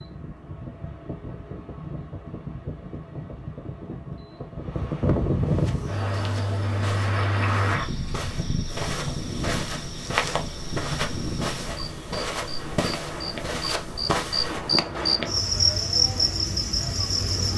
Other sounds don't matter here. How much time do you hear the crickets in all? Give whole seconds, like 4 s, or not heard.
12 s.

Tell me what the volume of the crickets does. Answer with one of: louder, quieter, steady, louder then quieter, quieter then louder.
quieter then louder.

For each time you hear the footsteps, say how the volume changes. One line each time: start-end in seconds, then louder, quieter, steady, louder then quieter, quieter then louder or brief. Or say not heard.
5.5-14.7 louder.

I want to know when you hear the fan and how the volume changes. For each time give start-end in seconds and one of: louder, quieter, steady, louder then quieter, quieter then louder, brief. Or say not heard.
0.0-11.9 louder then quieter.